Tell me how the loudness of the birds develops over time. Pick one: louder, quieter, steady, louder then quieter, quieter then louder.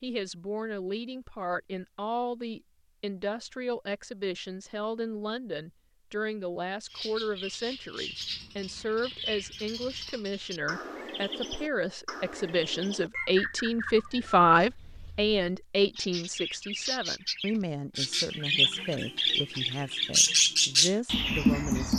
louder.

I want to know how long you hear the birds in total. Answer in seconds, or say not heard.
15 s.